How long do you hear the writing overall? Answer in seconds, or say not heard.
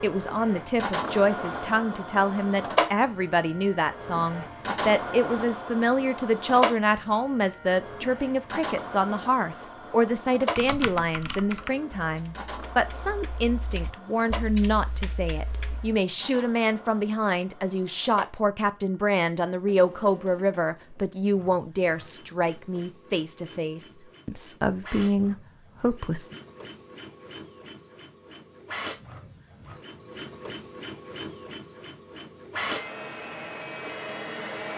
not heard.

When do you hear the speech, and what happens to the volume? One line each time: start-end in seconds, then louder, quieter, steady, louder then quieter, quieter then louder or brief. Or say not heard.
0.0-26.4 steady.